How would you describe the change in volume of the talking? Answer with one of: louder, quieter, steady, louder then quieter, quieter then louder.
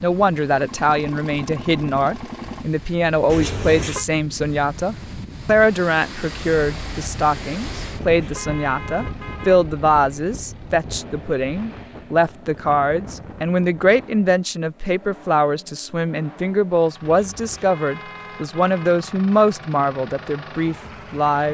steady.